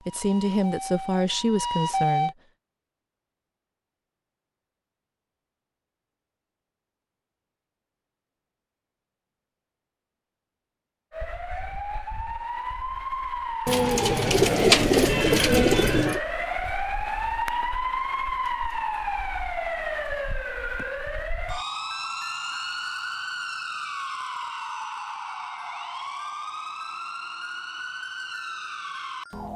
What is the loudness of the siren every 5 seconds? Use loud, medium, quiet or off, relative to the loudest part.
loud, off, loud, loud, loud, medium.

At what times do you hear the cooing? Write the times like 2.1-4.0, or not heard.
13.7-16.2.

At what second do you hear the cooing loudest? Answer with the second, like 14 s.
15 s.